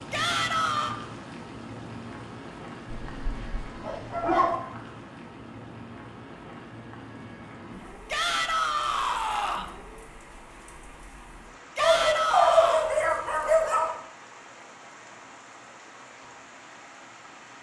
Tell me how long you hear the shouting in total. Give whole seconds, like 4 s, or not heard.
4 s.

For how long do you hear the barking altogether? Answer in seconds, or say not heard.
4 s.